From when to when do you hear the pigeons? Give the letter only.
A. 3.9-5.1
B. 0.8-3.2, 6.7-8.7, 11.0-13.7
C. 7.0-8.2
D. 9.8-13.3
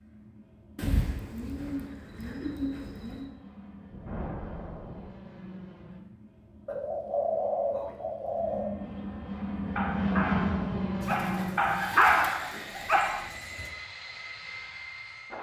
B.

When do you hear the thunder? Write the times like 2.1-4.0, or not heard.
3.9-5.1.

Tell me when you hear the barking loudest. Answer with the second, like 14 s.
12 s.